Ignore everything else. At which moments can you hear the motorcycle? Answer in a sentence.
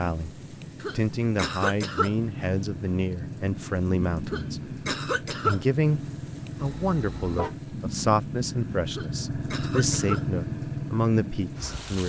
You can hear the motorcycle from 2.1 to 12.0 s.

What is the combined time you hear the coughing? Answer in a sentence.
The coughing can be heard for 4 seconds in total.